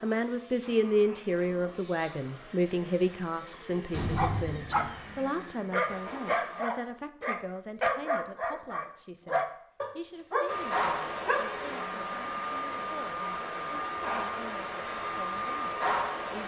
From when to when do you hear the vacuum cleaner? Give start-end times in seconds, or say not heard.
0.0-6.7, 10.4-16.4.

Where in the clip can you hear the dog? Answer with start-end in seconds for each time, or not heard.
3.8-11.6.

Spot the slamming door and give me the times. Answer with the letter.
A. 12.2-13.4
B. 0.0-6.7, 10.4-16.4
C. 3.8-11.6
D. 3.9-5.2
D.